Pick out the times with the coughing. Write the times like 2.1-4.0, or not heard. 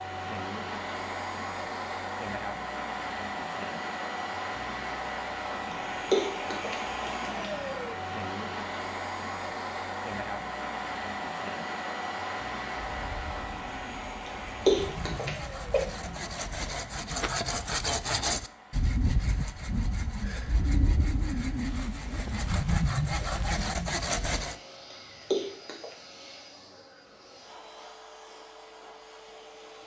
6.1-6.8, 14.7-15.8, 25.3-25.9.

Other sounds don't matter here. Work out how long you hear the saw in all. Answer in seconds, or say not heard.
12 s.